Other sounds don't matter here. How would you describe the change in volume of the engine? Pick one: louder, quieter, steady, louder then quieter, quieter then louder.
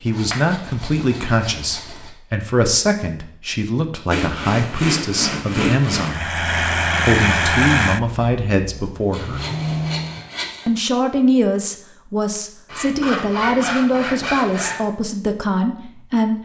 quieter then louder.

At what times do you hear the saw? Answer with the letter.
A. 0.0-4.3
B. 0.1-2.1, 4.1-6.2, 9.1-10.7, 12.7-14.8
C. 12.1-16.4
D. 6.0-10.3
B.